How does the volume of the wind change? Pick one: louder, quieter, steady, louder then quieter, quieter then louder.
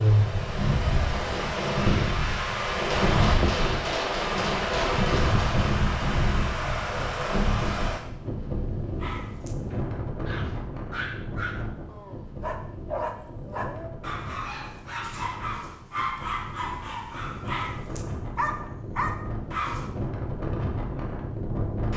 quieter then louder.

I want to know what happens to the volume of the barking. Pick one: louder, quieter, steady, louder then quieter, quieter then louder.
louder.